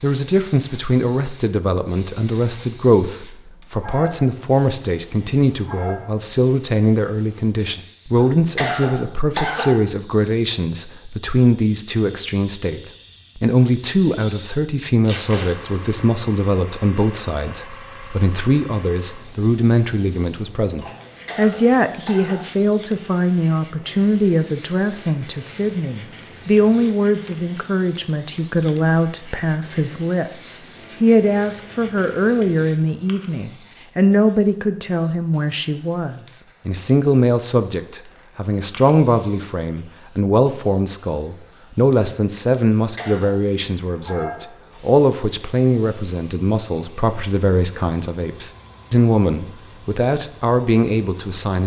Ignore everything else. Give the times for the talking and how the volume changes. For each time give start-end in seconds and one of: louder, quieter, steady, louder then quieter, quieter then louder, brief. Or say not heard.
0.0-51.6 steady.